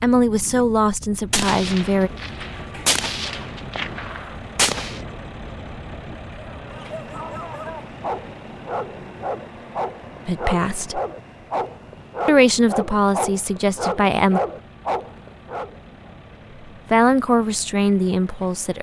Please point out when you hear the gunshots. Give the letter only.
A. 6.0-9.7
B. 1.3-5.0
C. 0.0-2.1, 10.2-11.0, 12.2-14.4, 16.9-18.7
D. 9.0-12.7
B.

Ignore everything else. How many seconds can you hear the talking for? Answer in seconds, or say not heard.
7 s.